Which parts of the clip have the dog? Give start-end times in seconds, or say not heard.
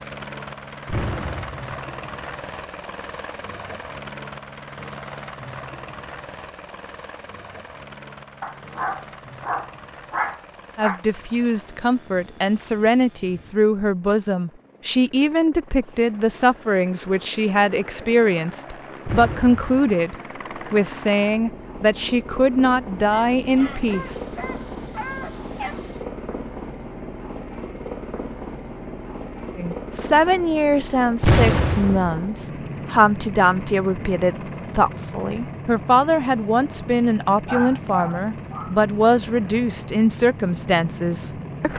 8.4-11.0, 23.1-26.1, 37.5-38.8.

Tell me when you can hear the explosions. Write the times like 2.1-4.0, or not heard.
0.8-1.6, 19.1-19.8, 31.2-32.2.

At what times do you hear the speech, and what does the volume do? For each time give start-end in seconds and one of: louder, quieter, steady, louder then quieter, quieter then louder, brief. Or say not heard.
10.8-24.1 steady
29.6-41.7 steady.